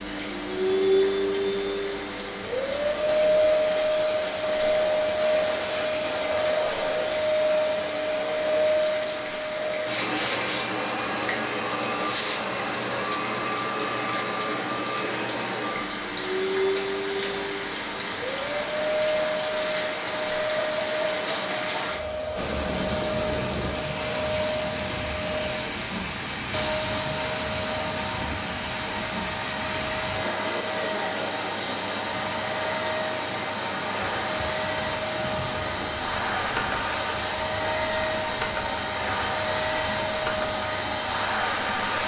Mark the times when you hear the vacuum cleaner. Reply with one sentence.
The vacuum cleaner can be heard from 0.0 to 42.0 s.